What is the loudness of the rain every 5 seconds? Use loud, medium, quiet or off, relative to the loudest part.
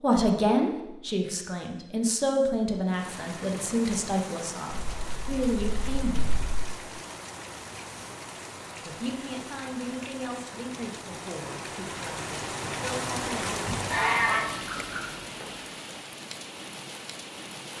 medium, medium, loud, medium.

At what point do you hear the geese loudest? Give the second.
14 s.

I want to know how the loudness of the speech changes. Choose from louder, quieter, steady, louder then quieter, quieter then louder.
quieter.